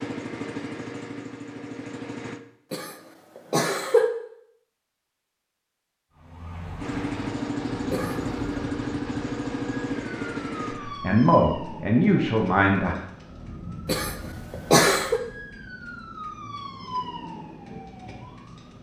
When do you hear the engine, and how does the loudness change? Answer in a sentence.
The engine can be heard briefly from 0.0 to 2.4 s; and from 6.8 to 10.8 s, at a steady volume.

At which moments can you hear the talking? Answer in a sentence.
You can hear the talking from 10.7 to 12.9 s.